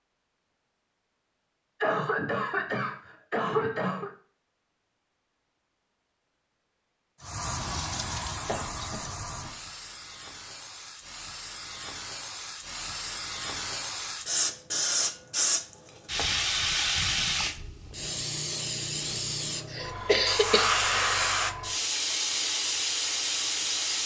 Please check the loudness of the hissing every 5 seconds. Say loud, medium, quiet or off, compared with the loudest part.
off, medium, medium, loud, loud.